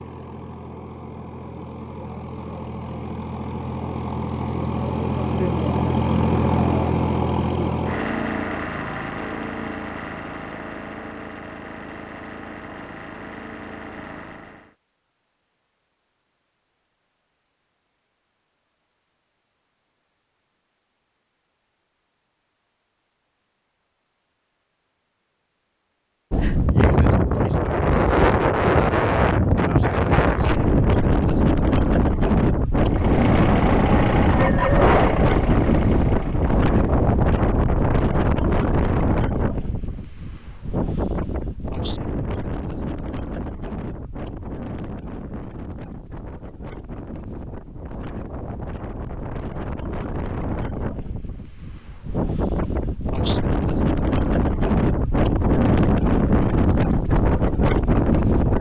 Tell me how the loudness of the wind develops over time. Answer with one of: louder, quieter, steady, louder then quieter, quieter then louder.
quieter then louder.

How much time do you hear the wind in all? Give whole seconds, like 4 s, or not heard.
32 s.